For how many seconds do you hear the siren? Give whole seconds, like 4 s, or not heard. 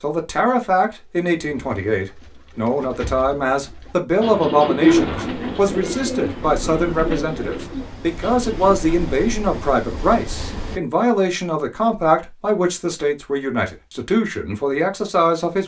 not heard.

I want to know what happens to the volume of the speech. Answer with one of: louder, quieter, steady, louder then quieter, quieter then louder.
steady.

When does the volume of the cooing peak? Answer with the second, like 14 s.
5 s.